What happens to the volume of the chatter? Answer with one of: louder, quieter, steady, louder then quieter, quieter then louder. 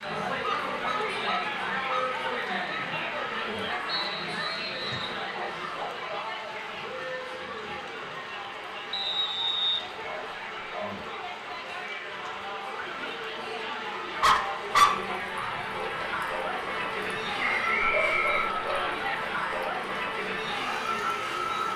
quieter then louder.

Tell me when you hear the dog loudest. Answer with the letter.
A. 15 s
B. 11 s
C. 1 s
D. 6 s
A.